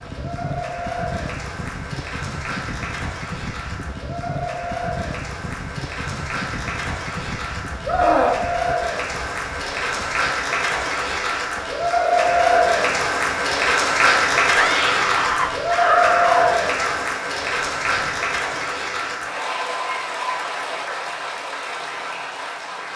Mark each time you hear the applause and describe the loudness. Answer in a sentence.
The applause can be heard from 0.0 to 22.9 s, getting louder then quieter.